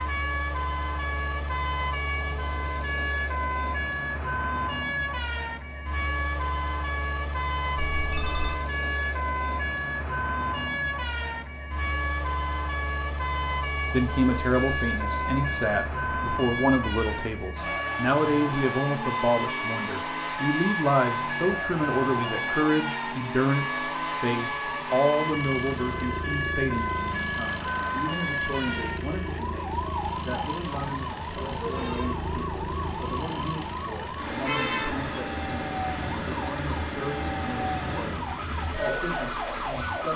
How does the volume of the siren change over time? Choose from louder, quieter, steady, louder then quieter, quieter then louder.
steady.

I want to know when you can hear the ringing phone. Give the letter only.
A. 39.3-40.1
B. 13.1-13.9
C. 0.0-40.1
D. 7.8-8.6
D.